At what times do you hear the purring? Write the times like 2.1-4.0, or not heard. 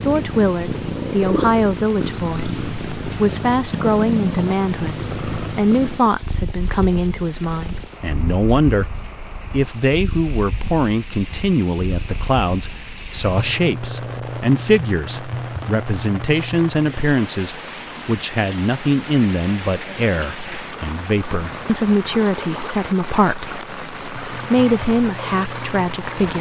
0.0-17.1, 24.2-26.3.